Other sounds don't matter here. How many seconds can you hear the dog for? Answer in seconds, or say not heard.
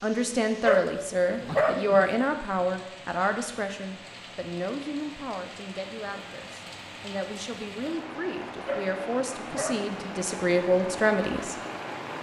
3 s.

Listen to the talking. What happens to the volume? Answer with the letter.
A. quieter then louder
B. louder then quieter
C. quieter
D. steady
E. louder
A.